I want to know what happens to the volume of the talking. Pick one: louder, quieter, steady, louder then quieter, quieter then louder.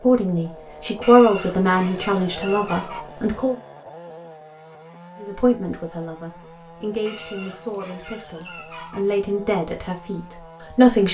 quieter then louder.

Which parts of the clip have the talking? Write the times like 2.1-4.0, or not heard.
0.0-3.5, 5.2-11.0.